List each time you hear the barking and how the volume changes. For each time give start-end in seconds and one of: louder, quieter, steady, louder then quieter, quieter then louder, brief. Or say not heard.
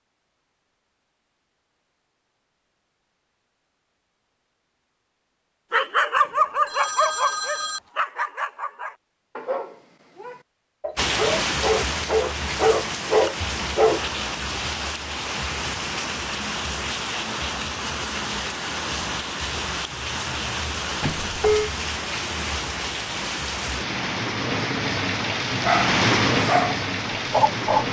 5.7-14.0 quieter then louder
25.6-27.8 brief.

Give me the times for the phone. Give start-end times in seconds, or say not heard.
6.2-7.8, 21.0-21.7.